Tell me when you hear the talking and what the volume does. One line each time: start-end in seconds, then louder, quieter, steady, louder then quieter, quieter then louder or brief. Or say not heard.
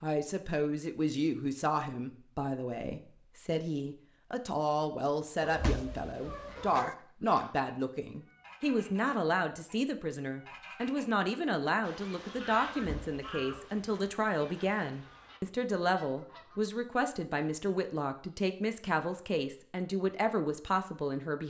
0.0-21.4 steady.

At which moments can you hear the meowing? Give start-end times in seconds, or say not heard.
5.4-7.0, 12.7-13.7.